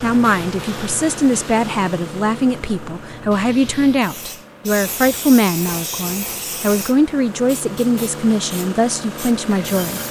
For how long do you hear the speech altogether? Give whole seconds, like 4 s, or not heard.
10 s.